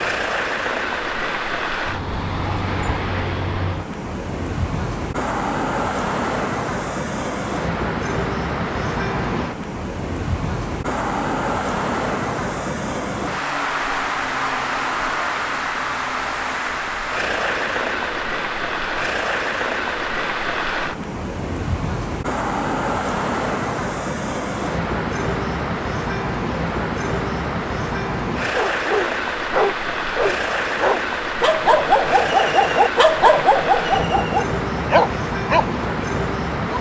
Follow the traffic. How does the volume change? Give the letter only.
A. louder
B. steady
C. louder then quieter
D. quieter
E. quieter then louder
B.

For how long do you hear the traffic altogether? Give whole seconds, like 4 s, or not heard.
37 s.